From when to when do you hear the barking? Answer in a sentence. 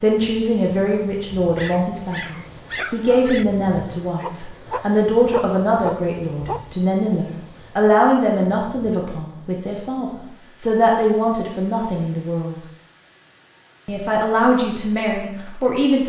You can hear the barking from 1.5 to 3.5 s and from 4.2 to 6.7 s.